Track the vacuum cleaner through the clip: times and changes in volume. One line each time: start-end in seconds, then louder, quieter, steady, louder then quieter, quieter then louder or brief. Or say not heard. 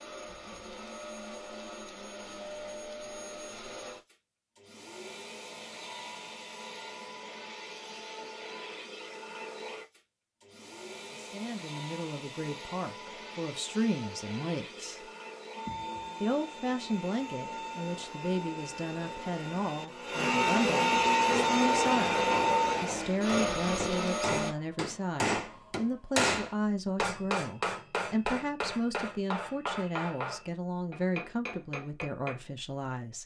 0.0-24.6 louder.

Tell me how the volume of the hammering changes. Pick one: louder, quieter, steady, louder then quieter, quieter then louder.
louder then quieter.